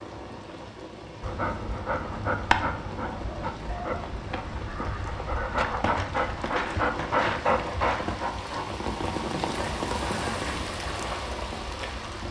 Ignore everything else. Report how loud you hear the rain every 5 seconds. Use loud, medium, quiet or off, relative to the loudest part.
medium, loud, loud.